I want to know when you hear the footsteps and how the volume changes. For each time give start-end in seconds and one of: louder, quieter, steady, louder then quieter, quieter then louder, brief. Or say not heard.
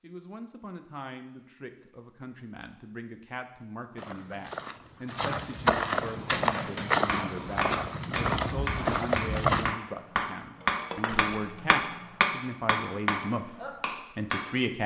4.0-9.8 louder.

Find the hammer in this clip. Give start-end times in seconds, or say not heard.
6.2-14.4.